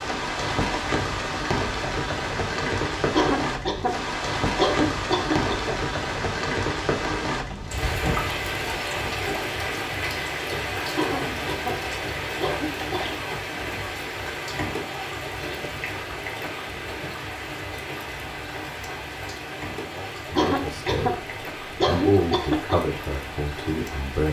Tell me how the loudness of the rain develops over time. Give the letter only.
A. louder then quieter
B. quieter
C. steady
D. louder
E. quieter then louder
B.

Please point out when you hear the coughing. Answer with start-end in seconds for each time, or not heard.
3.1-5.8, 10.9-13.2, 20.4-22.8.